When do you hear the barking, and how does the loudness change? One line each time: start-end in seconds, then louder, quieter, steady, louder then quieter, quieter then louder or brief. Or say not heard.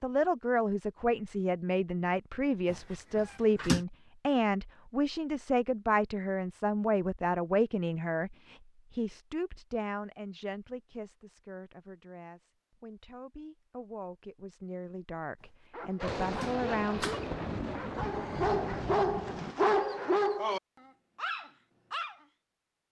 15.7-22.2 louder then quieter.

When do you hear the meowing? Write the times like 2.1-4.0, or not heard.
2.6-3.9, 16.3-17.4.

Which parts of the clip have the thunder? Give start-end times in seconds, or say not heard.
16.0-19.6.